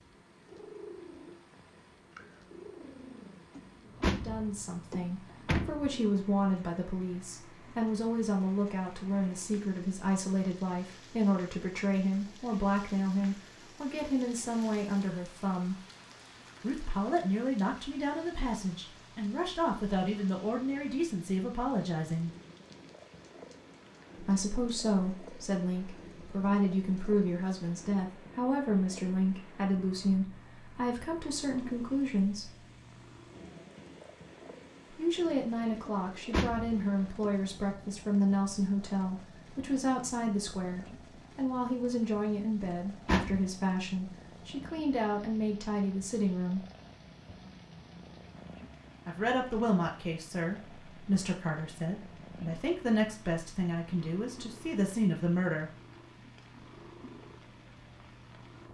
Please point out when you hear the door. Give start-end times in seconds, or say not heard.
3.5-5.9, 35.9-37.3, 42.6-43.4.